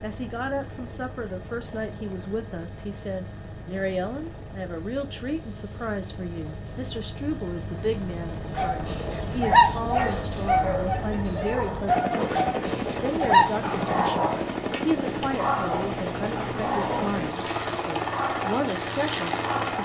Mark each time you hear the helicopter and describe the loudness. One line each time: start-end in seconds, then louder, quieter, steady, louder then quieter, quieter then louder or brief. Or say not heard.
0.0-19.8 louder.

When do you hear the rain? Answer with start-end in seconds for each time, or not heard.
not heard.